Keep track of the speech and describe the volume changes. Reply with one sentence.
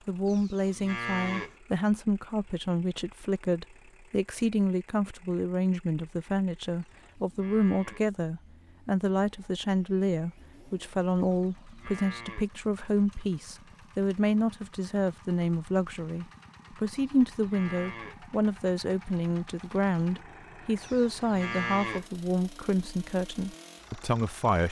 The volume of the speech stays about the same.